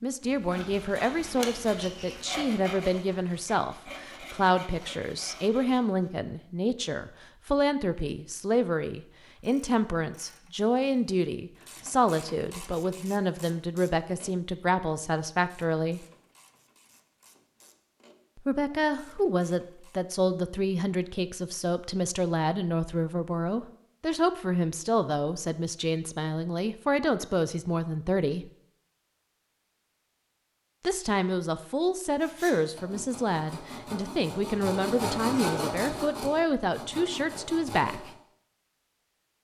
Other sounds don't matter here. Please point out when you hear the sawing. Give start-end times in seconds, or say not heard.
0.2-6.1, 32.2-38.1.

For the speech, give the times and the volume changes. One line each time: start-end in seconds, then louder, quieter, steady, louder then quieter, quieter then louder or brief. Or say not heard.
0.0-16.1 steady
18.4-28.5 steady
30.8-38.1 steady.